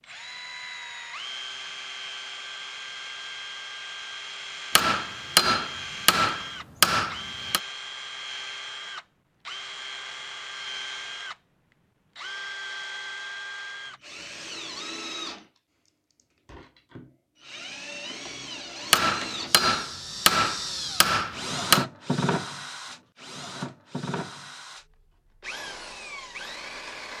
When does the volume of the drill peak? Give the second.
22 s.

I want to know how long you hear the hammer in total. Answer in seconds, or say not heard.
6 s.